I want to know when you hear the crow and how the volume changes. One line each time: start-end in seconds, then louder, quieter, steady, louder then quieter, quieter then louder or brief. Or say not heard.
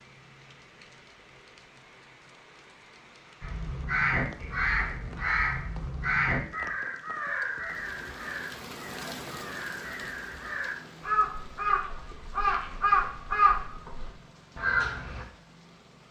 3.4-15.2 quieter then louder.